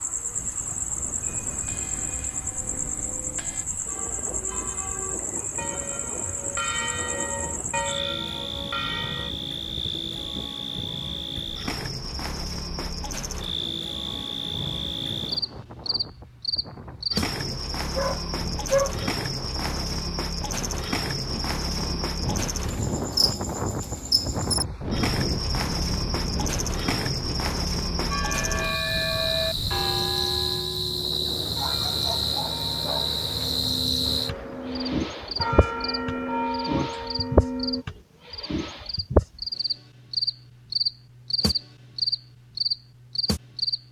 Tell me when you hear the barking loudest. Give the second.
19 s.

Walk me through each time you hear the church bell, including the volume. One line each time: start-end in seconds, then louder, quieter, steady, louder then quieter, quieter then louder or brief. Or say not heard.
1.6-9.3 louder
28.1-37.9 quieter then louder.